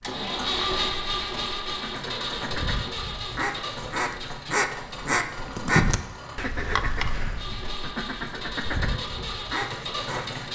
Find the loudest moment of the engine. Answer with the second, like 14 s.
1 s.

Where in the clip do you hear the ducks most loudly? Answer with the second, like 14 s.
6 s.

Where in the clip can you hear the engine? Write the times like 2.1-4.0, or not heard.
0.0-10.5.